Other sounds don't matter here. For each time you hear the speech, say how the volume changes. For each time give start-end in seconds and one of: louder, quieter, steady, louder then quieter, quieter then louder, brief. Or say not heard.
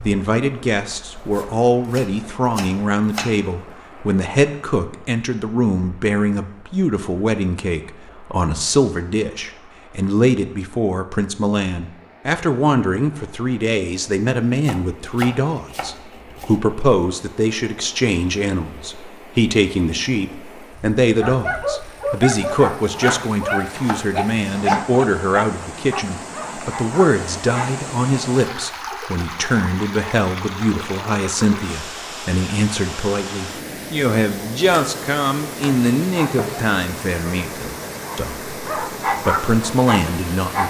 0.0-40.6 steady.